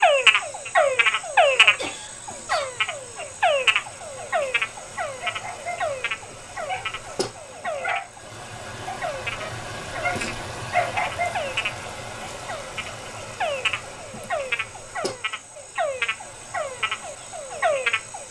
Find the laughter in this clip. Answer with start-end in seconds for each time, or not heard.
1.8-2.7, 7.6-8.3, 14.1-14.7.